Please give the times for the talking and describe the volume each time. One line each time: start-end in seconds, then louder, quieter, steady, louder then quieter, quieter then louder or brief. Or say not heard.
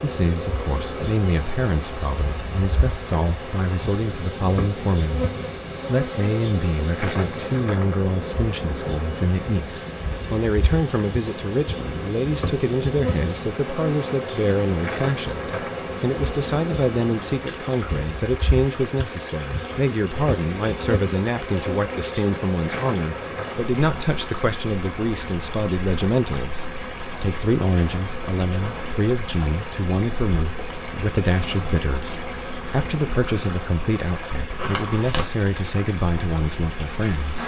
0.0-5.2 steady
5.8-37.4 steady.